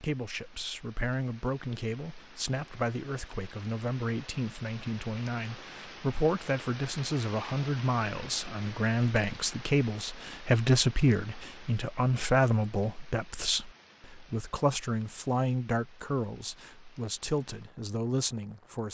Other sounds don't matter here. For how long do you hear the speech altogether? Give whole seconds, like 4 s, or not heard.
19 s.